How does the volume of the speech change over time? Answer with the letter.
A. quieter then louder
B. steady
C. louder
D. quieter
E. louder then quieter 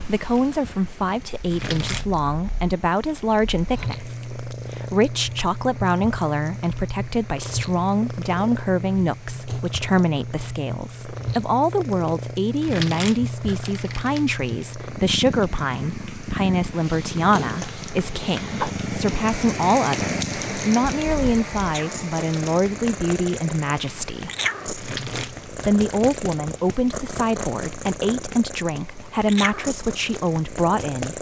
B.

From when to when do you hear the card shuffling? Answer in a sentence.
The card shuffling can be heard from 1.5 to 2.1 s, from 12.6 to 14.6 s and from 24.8 to 26.4 s.